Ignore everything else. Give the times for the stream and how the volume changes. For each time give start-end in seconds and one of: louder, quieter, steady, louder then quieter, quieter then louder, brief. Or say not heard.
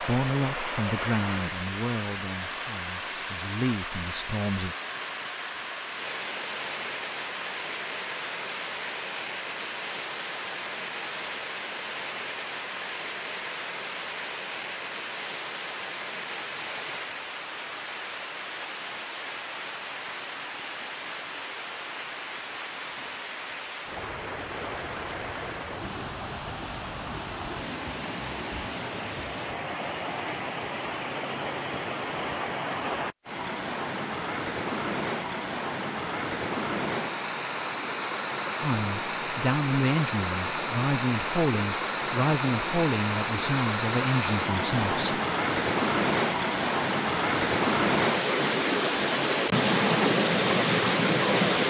0.0-51.6 louder.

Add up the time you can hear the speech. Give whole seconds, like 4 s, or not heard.
11 s.